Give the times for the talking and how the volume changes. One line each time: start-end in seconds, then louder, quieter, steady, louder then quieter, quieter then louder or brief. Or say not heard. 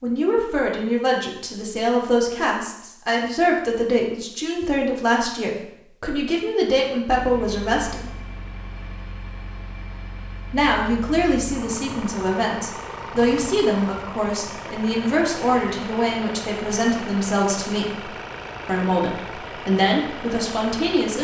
0.0-8.1 steady
10.5-21.2 steady.